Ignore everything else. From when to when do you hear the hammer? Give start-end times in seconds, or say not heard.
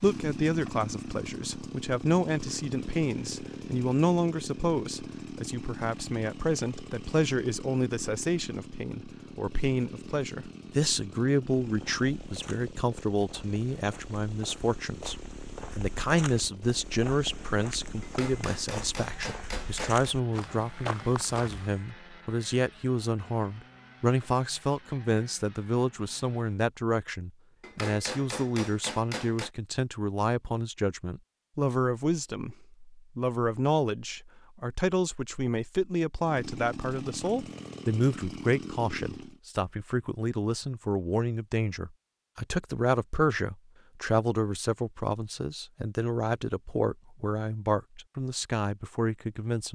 18.0-20.1, 27.6-29.5.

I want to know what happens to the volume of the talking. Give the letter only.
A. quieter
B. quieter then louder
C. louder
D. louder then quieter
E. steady
E.